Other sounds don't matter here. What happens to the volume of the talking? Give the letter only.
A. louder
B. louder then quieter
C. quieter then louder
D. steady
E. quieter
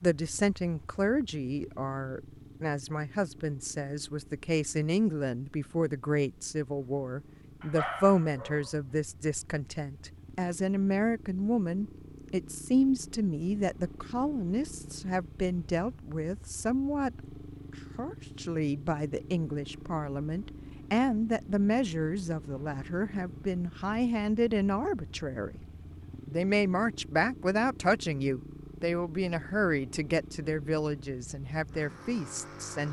D.